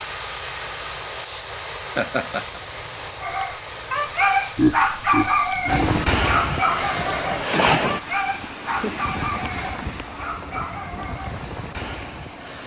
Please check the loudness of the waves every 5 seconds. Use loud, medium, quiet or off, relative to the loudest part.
off, loud, medium.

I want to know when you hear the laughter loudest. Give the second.
5 s.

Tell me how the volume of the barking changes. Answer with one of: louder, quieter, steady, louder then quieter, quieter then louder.
quieter.